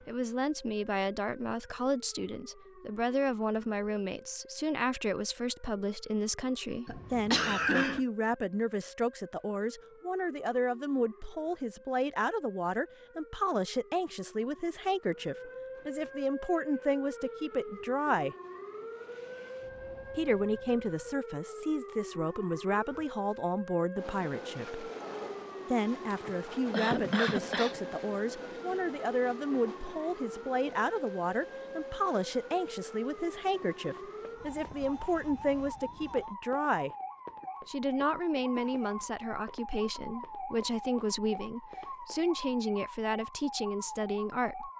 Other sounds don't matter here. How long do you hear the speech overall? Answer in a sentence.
You can hear the speech for 41 seconds altogether.